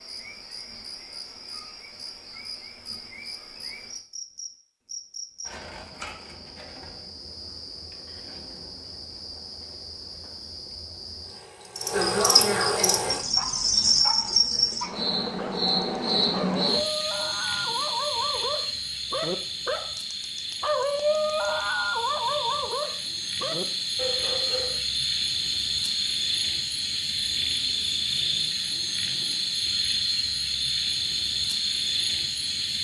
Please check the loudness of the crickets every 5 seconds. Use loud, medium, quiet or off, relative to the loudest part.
quiet, quiet, loud, loud, medium, loud, loud.